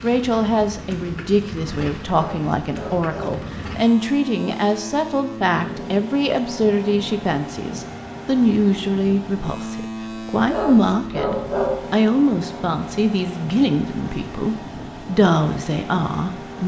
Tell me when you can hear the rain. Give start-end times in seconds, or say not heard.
not heard.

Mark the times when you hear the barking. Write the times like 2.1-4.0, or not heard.
2.1-3.5, 10.4-11.8.